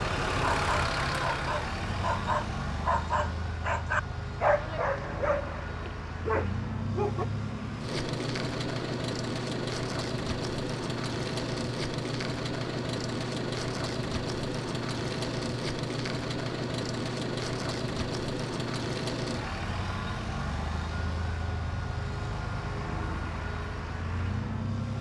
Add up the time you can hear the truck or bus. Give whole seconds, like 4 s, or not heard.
25 s.